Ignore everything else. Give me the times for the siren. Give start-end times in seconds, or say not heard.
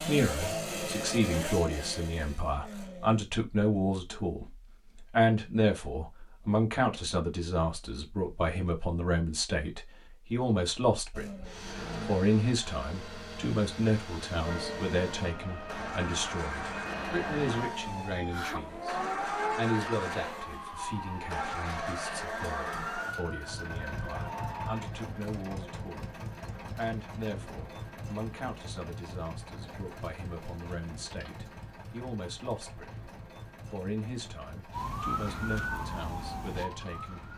14.4-24.9, 34.7-37.3.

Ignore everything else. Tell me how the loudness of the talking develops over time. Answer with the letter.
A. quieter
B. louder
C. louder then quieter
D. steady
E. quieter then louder
A.